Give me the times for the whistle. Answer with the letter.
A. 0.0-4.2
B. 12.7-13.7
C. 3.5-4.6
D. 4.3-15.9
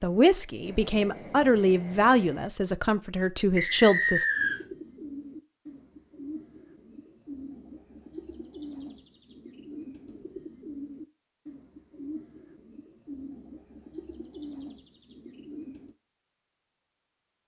C.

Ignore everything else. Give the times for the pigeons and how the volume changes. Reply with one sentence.
The pigeons can be heard from 4.3 to 15.9 s, at a steady volume.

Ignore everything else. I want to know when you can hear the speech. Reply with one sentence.
The speech can be heard from 0.0 to 4.2 s.